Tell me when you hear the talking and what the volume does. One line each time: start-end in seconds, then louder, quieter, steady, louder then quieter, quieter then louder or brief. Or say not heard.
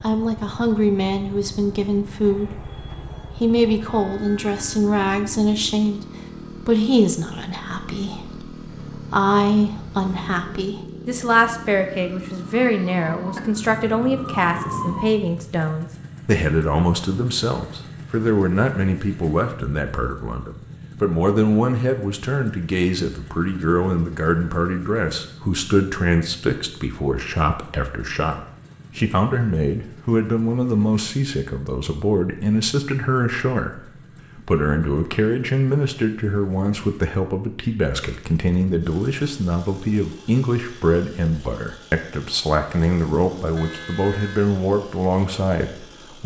0.0-46.2 steady.